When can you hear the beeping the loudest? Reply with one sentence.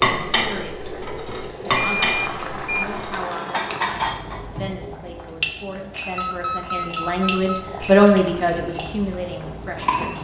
The volume of the beeping peaks at 2 seconds.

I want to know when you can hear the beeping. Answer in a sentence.
You can hear the beeping from 1.8 to 2.9 s and from 6.2 to 7.7 s.